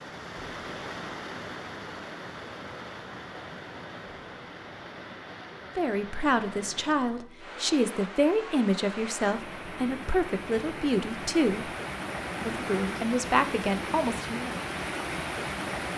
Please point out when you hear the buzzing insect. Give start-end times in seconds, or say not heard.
not heard.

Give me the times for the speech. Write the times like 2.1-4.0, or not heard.
5.8-11.7, 12.4-14.6.